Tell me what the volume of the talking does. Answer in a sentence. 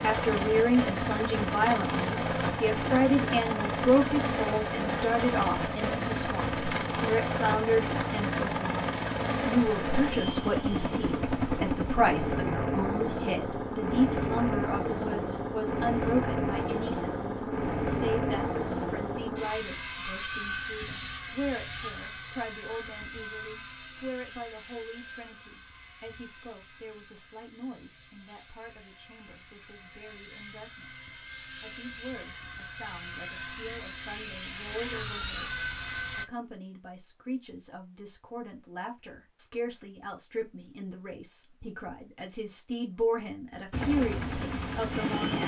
The volume of the talking goes down, then up.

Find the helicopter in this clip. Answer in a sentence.
You can hear the helicopter from 0.0 to 36.2 s and from 43.7 to 45.4 s.